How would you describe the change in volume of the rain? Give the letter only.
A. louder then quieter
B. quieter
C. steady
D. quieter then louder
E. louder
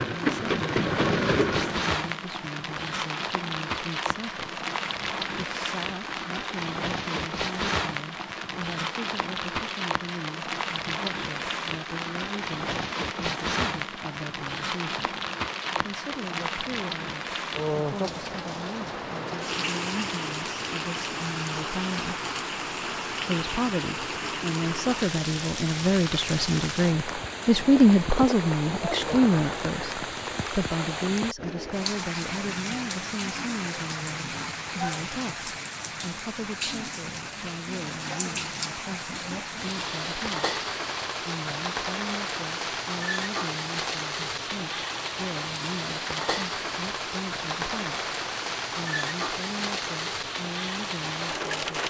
C.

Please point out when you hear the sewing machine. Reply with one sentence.
You can hear the sewing machine from 0.0 to 1.9 s.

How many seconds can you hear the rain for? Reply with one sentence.
You can hear the rain for 52 seconds altogether.